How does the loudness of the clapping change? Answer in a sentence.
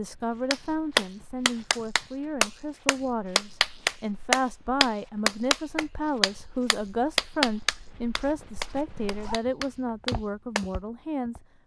The loudness of the clapping goes down.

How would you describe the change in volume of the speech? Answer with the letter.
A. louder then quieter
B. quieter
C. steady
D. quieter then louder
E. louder
C.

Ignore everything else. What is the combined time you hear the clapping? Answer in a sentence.
The clapping can be heard for 10 seconds in total.